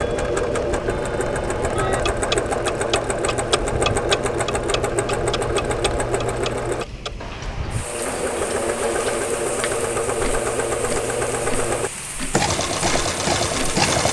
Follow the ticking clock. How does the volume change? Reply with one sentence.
The volume of the ticking clock goes down.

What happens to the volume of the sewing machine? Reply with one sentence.
The volume of the sewing machine stays about the same.